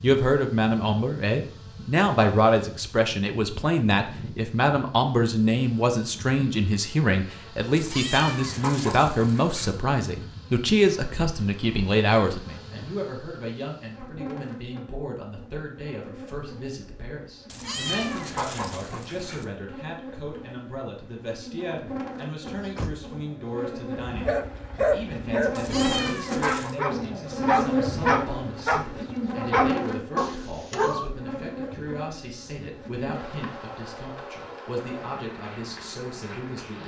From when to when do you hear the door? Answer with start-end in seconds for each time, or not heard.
22.4-23.1.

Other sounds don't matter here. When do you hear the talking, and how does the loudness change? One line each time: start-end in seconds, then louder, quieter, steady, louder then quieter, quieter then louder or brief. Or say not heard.
0.0-36.8 quieter.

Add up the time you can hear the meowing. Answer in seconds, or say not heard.
5 s.